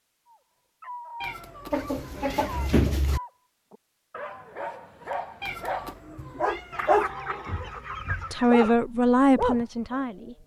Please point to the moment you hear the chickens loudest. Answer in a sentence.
The loudest moment of the chickens is at 3 seconds.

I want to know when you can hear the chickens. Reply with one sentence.
The chickens can be heard from 1.7 to 3.2 s and from 6.7 to 8.8 s.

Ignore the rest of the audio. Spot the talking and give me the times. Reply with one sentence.
The talking can be heard from 8.3 to 10.4 s.